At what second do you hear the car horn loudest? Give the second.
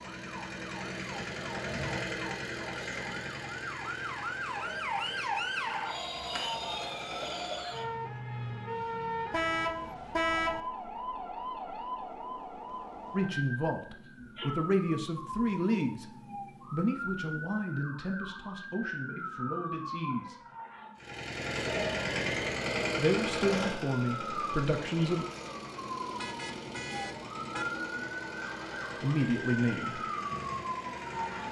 10 s.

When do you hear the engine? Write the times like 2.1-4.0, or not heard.
0.0-7.8, 20.9-31.4.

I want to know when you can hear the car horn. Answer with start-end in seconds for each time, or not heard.
9.3-10.6, 26.1-27.6.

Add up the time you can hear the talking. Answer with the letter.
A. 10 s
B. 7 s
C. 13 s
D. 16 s
A.